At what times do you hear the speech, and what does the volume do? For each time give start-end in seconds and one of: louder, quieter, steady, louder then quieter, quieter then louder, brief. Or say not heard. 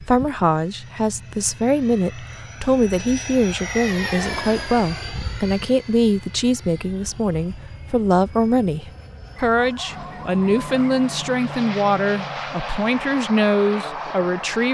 0.0-14.7 steady.